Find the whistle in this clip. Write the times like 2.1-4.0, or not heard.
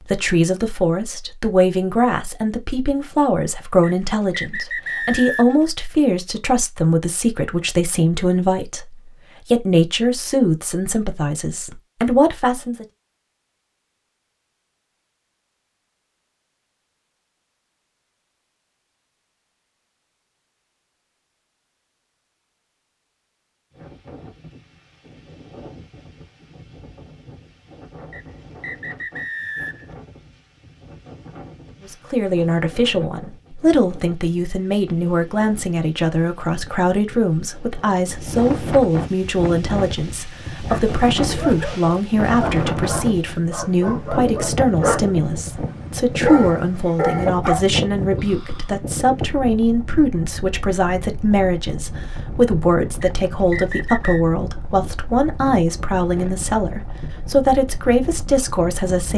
3.8-5.7, 28.1-29.9, 53.0-54.2.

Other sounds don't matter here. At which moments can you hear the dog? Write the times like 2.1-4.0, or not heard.
40.5-47.6.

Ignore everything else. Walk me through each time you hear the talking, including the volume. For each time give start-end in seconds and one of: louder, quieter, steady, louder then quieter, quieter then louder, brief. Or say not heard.
0.0-12.8 steady
31.9-59.1 steady.